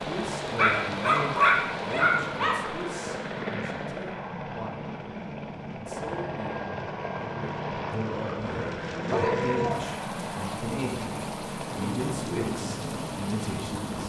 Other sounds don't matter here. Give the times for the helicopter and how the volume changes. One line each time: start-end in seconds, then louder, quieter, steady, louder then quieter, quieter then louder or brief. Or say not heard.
0.0-14.0 steady.